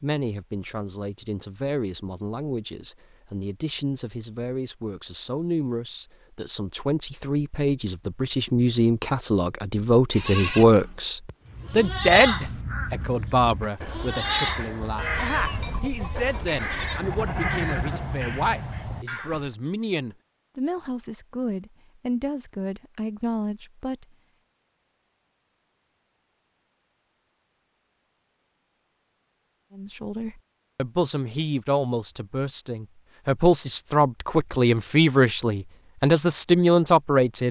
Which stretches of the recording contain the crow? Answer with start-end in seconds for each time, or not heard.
11.4-18.9.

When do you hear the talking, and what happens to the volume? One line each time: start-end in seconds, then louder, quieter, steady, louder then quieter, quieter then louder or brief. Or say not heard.
0.0-24.1 louder then quieter
29.8-37.4 louder.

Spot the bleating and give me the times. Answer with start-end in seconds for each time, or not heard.
10.1-19.5.